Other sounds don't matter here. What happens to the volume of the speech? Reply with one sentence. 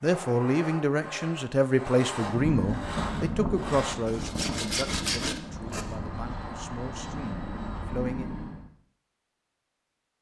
The volume of the speech goes down.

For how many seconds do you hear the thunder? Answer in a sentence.
The thunder can be heard for 3 seconds in total.